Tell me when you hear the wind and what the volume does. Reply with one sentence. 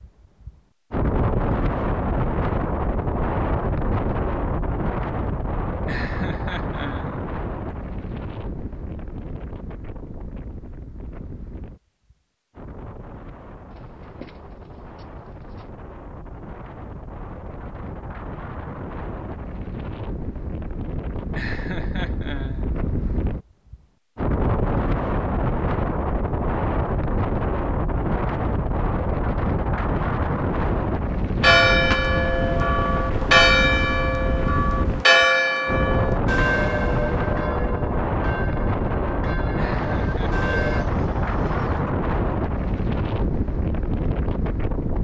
The wind can be heard from 0.0 to 44.9 s, getting quieter then louder.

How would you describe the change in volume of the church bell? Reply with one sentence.
The loudness of the church bell goes down.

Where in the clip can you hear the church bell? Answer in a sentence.
The church bell can be heard from 31.4 to 40.9 s.